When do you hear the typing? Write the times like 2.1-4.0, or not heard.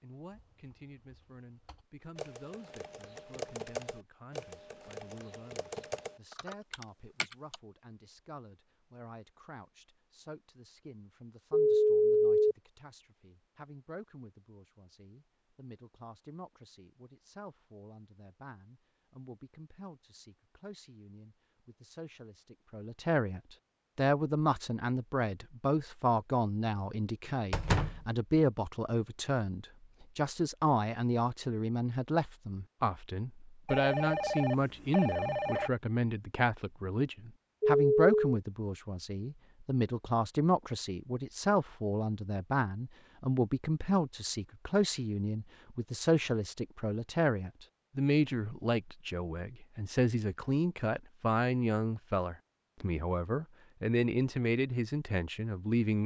0.3-7.6.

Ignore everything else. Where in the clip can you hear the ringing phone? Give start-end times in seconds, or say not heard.
11.5-12.6, 33.6-35.7, 37.6-38.1.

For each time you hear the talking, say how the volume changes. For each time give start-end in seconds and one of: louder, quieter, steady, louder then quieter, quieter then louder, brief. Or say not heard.
0.0-56.0 louder.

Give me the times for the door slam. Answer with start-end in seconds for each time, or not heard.
27.5-28.1.